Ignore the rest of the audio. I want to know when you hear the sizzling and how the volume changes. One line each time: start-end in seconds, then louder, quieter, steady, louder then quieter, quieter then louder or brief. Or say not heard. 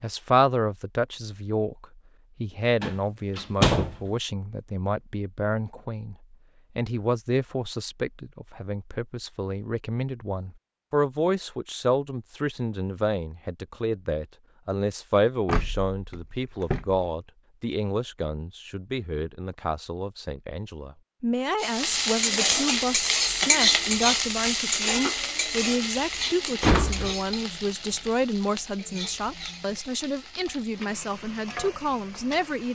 21.6-32.6 quieter.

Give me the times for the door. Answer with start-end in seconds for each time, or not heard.
2.8-4.0, 15.4-17.1, 26.6-27.1.